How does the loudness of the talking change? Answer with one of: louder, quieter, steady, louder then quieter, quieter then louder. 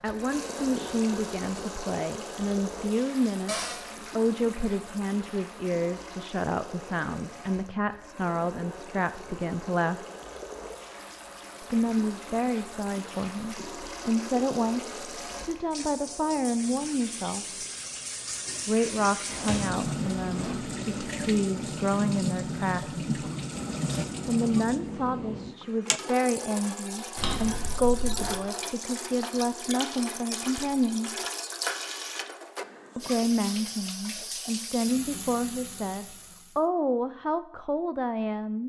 steady.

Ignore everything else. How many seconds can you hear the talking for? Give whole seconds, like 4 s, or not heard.
33 s.